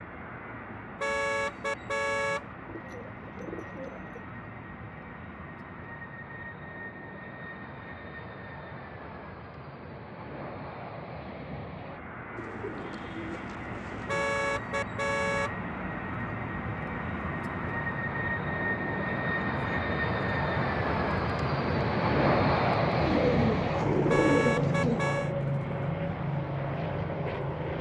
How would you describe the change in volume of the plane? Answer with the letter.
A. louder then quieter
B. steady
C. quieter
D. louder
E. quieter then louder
D.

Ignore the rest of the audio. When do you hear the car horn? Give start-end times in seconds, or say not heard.
1.0-2.5, 14.1-15.6, 24.1-25.4.